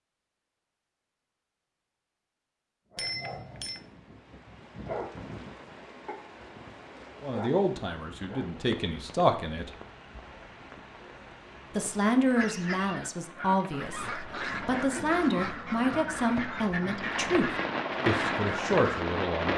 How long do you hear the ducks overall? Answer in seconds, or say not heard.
7 s.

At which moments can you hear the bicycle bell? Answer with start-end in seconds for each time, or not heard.
3.0-3.9.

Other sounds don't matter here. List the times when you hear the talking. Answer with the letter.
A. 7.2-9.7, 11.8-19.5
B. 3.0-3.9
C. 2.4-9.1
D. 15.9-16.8
A.